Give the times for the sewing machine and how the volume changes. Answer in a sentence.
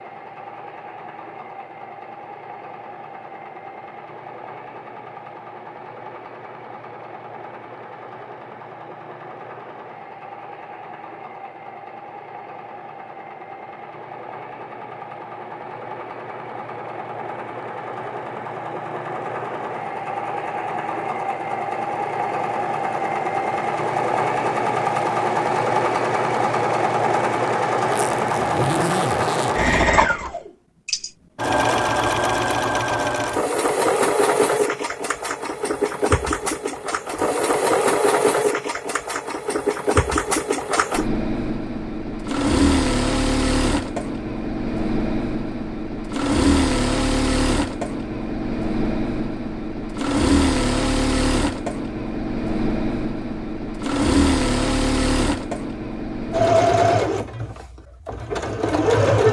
The sewing machine can be heard from 0.0 to 59.2 s, getting louder.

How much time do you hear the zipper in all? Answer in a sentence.
You can hear the zipper for 2 seconds altogether.